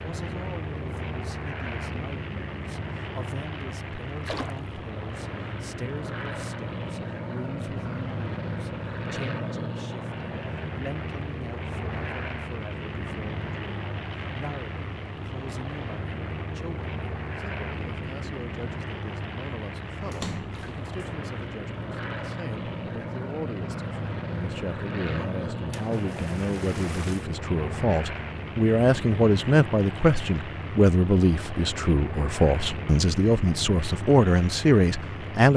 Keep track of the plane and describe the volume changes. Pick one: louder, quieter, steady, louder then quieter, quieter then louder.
steady.